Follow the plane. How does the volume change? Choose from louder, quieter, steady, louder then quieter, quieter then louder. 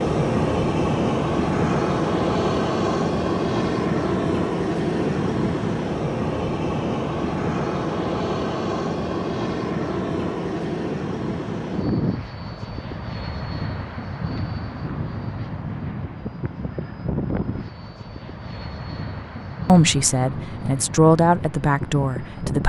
quieter.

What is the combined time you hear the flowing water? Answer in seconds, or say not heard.
not heard.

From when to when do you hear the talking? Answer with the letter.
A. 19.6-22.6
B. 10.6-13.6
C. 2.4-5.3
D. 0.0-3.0
A.